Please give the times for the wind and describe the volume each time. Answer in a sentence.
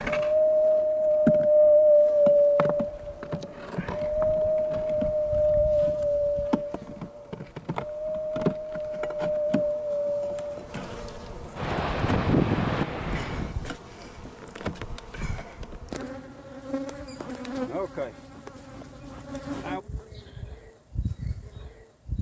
You can hear the wind from 0.0 to 13.5 s, getting quieter.